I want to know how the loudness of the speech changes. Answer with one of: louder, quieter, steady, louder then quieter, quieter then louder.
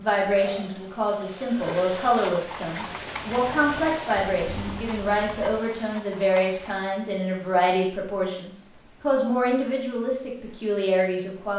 steady.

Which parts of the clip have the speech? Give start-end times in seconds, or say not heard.
0.0-11.5.